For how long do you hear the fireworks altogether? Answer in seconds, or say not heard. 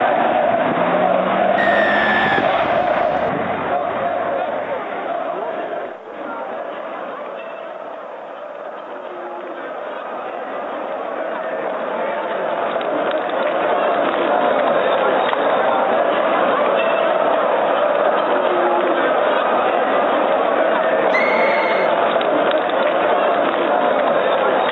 not heard.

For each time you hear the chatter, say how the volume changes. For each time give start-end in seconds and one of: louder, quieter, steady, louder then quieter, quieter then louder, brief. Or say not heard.
0.0-24.6 quieter then louder.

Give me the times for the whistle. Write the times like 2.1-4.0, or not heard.
1.6-3.3, 21.1-21.9.